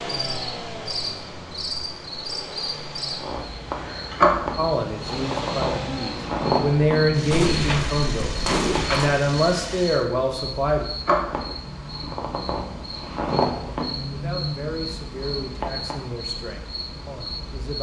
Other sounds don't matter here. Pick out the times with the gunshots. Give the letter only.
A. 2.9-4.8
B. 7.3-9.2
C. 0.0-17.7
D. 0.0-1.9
B.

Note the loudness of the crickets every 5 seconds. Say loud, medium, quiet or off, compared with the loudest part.
loud, loud, loud, medium.